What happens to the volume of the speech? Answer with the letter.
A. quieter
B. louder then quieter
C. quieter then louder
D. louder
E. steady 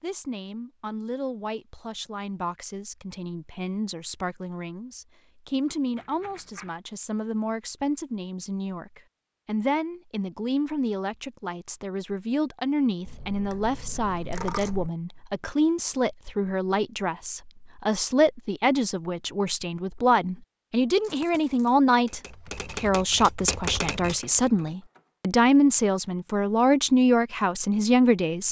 D.